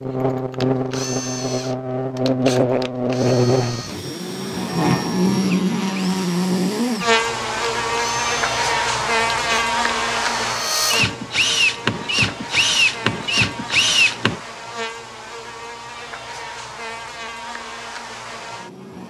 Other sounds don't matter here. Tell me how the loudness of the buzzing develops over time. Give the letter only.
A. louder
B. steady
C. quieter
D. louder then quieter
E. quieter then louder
C.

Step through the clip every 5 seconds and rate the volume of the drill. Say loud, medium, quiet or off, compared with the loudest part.
quiet, quiet, loud, off.